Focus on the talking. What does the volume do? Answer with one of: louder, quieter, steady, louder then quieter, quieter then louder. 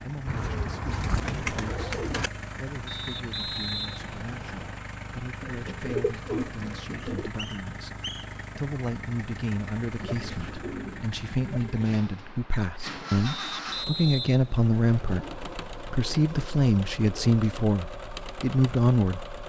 louder.